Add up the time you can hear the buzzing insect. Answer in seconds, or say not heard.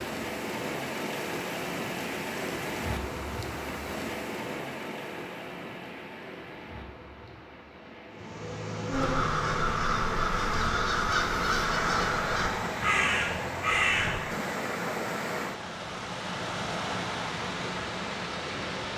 6 s.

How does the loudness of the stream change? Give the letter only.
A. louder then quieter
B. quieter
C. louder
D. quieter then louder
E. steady
D.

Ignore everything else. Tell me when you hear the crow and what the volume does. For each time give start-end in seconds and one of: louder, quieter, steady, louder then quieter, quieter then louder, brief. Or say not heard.
8.9-14.2 steady.